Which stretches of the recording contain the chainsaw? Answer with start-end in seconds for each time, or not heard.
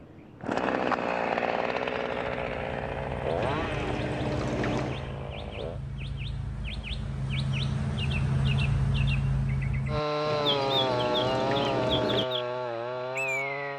0.0-5.8, 9.8-13.7.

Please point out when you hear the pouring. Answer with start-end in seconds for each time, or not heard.
3.4-5.0, 10.2-12.2.